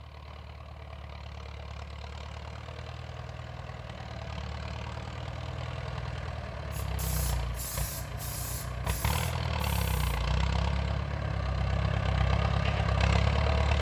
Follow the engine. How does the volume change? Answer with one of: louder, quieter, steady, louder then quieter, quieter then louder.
louder.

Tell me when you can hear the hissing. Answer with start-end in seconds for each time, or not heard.
6.7-10.1.